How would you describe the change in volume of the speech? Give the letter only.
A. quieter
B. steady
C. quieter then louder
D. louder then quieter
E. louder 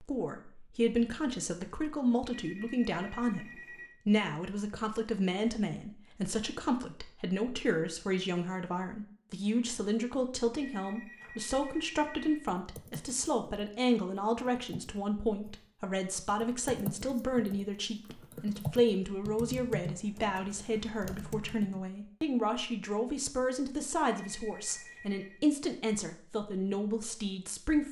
B.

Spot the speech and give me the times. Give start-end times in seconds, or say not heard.
0.0-27.8.